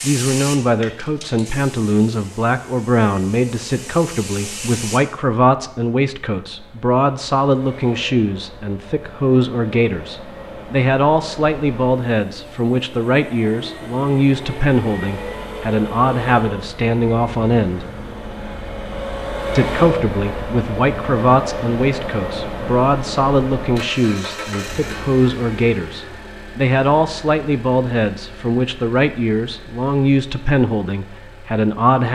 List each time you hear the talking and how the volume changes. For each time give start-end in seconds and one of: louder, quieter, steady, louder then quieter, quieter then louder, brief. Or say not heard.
0.0-17.9 steady
19.6-32.1 steady.